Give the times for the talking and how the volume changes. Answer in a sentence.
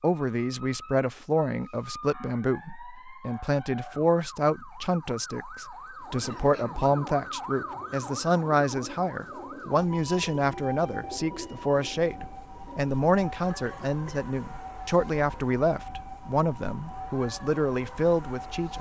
You can hear the talking from 0.0 to 18.7 s, at a steady volume.